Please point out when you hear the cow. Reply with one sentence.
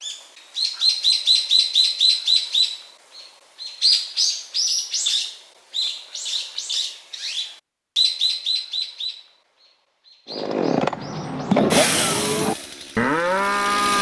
You can hear the cow from 11.7 to 13.9 s.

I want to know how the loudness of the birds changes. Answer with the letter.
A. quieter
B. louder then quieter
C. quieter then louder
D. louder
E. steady
A.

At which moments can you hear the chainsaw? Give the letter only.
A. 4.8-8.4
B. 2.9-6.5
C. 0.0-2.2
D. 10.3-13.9
D.